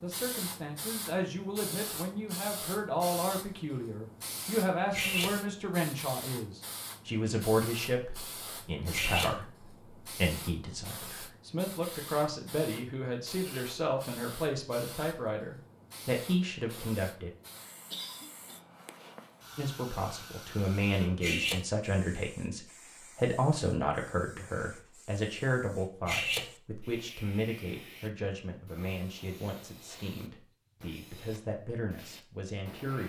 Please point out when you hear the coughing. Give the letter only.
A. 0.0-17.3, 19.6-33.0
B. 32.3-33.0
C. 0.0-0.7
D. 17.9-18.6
D.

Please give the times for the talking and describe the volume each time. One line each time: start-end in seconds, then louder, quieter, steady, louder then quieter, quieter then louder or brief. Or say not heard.
0.0-17.3 steady
19.6-33.0 quieter.